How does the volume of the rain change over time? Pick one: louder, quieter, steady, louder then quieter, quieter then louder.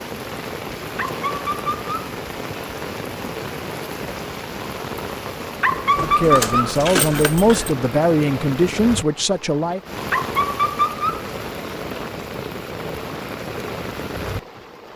steady.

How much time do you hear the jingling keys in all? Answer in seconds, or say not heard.
2 s.